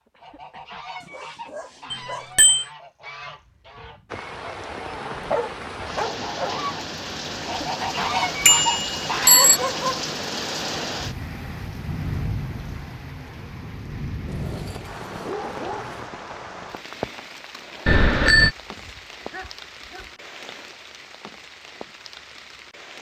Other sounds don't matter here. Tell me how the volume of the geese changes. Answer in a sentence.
The volume of the geese goes up.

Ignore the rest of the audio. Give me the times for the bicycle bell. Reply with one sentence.
You can hear the bicycle bell from 1.9 to 2.6 s, from 8.4 to 9.6 s and from 17.9 to 18.5 s.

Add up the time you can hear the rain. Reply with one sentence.
You can hear the rain for 19 seconds altogether.